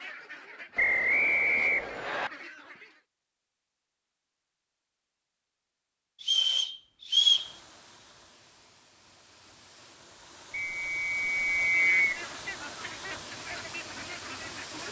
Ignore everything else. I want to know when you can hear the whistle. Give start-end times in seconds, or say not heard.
0.8-2.3, 6.2-7.5, 10.5-12.2.